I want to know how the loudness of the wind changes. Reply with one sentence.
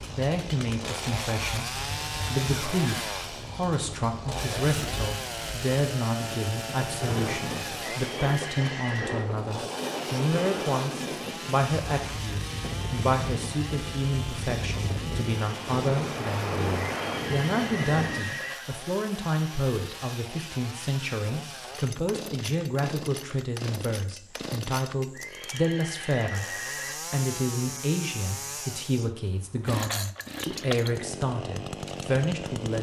The volume of the wind goes up.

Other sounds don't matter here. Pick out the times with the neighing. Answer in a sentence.
You can hear the neighing from 7.8 to 9.2 s, from 16.9 to 18.6 s and from 25.1 to 26.9 s.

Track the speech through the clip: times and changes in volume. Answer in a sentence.
The speech can be heard from 0.1 to 32.7 s, at a steady volume.